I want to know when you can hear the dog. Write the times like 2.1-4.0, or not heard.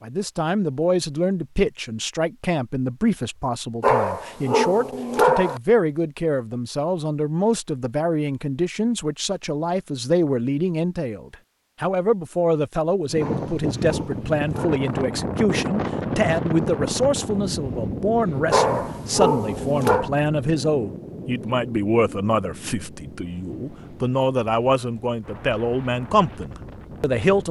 3.8-5.6, 13.2-14.9, 18.5-20.1.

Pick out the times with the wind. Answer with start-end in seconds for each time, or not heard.
13.1-27.4.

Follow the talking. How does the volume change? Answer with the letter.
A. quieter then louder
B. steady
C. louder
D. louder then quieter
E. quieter
B.